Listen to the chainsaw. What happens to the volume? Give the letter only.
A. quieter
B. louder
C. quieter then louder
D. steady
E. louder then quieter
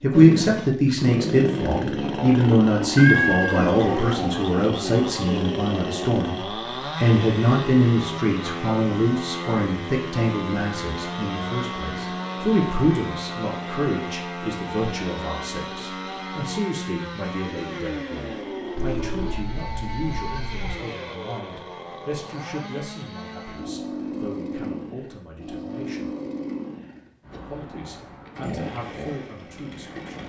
A.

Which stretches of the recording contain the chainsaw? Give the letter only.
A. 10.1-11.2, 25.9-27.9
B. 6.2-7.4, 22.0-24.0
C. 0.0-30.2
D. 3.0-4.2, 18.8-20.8
C.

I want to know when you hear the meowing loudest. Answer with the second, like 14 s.
3 s.